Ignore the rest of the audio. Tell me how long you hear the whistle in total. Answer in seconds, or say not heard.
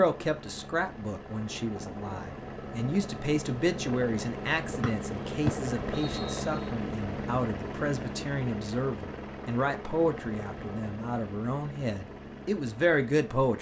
2 s.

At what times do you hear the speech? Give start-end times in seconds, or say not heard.
0.0-13.5.